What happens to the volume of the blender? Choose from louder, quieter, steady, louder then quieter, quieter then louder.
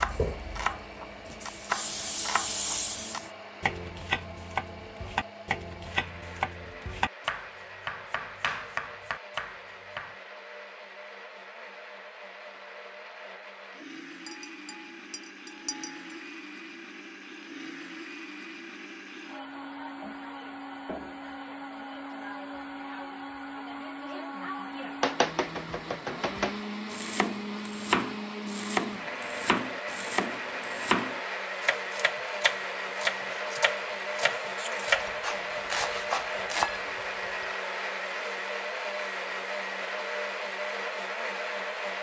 louder.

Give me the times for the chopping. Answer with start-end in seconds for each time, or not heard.
0.0-10.2, 25.0-36.7.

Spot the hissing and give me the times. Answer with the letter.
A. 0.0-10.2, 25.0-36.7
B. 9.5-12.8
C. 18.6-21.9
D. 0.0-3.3
D.